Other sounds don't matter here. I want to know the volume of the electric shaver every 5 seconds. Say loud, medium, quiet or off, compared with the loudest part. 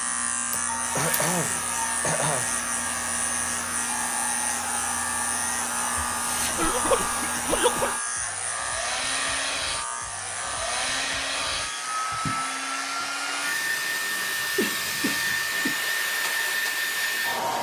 loud, loud, medium, medium.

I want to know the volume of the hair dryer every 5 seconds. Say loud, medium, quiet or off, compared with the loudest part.
medium, medium, loud, loud.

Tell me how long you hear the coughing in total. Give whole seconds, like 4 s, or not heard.
5 s.